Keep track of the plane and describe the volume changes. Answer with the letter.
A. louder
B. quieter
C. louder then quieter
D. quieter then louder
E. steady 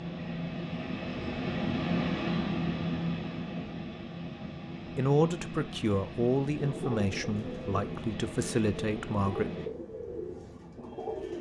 B.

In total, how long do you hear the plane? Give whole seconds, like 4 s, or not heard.
10 s.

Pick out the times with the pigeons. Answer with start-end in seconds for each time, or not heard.
6.5-11.3.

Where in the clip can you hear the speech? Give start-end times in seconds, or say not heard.
5.0-9.5.